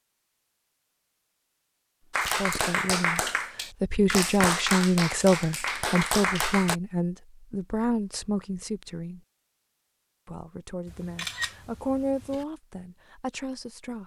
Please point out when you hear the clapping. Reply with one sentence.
You can hear the clapping from 2.1 to 6.8 s.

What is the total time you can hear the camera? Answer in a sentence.
The camera can be heard for 2 seconds in total.